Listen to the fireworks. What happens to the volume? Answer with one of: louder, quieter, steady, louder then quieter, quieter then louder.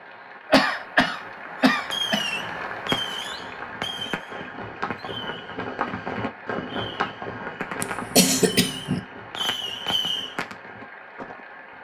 quieter then louder.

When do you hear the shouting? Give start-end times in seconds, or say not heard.
not heard.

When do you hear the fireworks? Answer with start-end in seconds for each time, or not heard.
1.7-10.6.